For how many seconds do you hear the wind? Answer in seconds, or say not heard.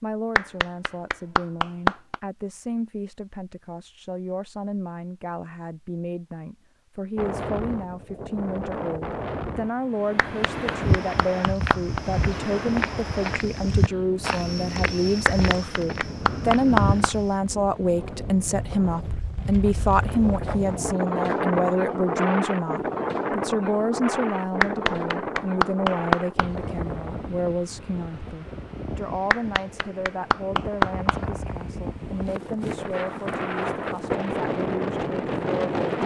29 s.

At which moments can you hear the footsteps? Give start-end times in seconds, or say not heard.
10.8-17.3.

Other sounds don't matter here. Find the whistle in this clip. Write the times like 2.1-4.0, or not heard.
not heard.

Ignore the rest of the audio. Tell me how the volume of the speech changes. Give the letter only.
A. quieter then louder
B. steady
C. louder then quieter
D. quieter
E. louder
C.